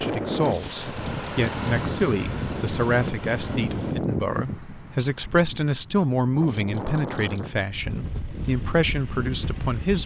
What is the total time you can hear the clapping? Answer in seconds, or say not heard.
not heard.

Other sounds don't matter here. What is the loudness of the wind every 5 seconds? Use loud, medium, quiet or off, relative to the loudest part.
loud, medium.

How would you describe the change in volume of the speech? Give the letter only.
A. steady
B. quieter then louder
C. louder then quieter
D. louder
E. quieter
A.